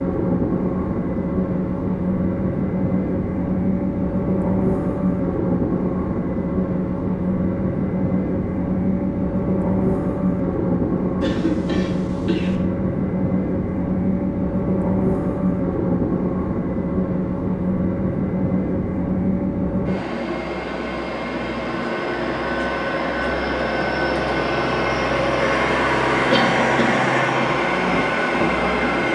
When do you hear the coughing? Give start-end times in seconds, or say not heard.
11.2-12.6, 26.3-27.1.